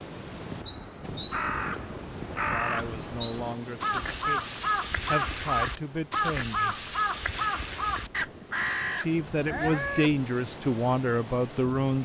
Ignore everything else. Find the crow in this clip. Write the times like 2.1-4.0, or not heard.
0.2-10.2.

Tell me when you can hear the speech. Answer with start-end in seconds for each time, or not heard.
2.5-6.8, 8.9-11.9.